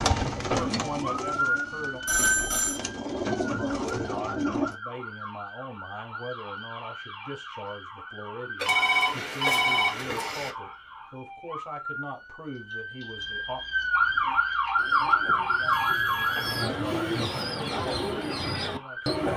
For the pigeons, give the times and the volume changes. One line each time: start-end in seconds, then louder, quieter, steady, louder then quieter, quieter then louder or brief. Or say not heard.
0.0-4.8 quieter then louder
14.1-19.3 louder.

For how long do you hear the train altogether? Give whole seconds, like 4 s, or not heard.
2 s.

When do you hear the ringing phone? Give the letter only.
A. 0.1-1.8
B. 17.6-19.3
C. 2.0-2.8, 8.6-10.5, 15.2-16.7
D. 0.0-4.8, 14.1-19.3
C.